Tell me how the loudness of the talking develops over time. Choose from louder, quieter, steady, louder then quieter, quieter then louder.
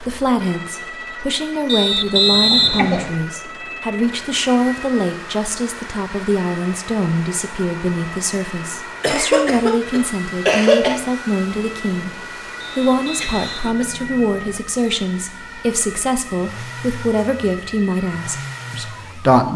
steady.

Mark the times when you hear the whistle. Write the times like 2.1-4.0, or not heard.
1.6-3.2, 12.6-14.6.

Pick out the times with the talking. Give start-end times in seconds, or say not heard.
0.0-19.5.